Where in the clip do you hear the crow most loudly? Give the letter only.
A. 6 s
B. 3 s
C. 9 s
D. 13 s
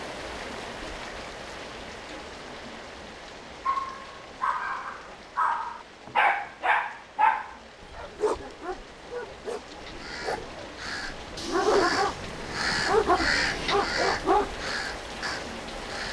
D.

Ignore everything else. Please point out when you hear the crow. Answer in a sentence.
You can hear the crow from 9.8 to 16.0 s.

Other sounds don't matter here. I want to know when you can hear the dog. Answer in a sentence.
The dog can be heard from 3.6 to 14.7 s.